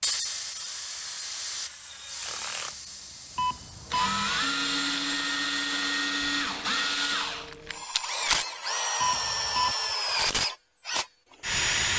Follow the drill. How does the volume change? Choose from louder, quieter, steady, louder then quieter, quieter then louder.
louder.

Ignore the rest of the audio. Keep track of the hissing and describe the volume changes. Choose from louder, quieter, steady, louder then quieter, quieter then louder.
quieter.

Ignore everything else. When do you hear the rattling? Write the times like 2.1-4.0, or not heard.
7.5-8.4.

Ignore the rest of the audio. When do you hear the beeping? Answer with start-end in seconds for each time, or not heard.
3.4-4.1, 9.0-9.8.